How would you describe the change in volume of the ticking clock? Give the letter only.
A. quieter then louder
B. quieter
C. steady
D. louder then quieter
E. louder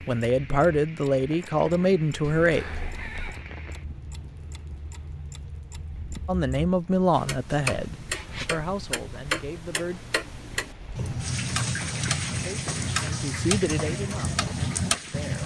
E.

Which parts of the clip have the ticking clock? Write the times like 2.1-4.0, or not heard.
0.0-15.4.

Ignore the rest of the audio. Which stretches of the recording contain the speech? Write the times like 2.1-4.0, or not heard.
0.1-2.6, 6.2-10.0, 12.4-15.4.